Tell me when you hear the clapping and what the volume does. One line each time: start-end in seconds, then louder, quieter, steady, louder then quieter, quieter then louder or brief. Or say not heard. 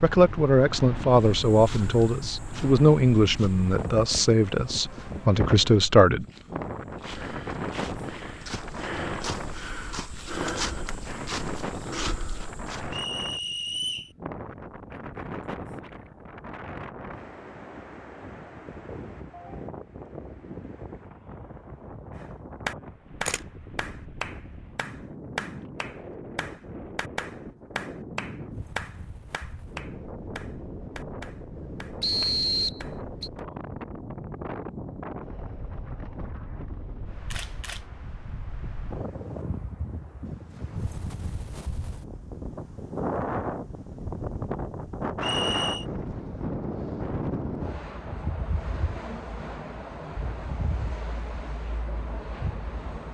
22.1-33.5 quieter.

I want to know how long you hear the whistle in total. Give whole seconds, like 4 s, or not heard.
3 s.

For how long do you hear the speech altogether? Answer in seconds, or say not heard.
6 s.